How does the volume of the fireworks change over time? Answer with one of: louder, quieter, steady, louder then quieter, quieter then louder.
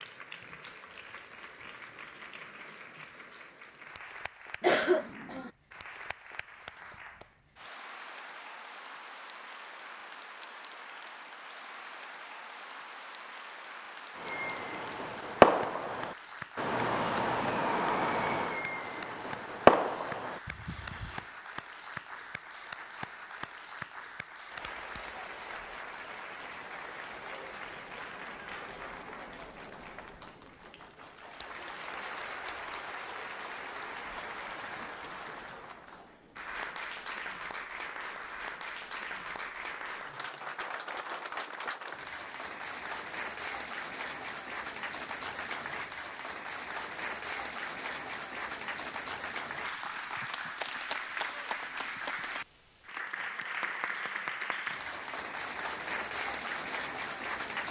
quieter then louder.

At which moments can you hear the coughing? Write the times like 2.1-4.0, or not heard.
4.6-5.5.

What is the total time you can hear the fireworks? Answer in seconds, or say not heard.
7 s.